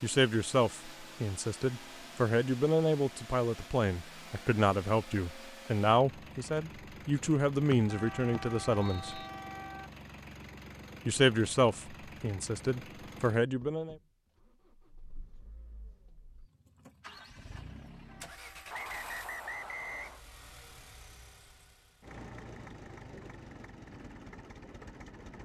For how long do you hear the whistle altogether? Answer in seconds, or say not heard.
3 s.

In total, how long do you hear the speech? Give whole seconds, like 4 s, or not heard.
12 s.